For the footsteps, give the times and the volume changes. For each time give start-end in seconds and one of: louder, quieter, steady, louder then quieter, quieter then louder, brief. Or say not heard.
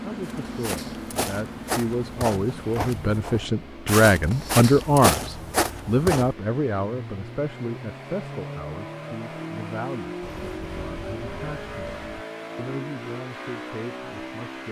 0.2-6.3 louder.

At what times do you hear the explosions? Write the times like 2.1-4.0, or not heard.
10.2-12.2.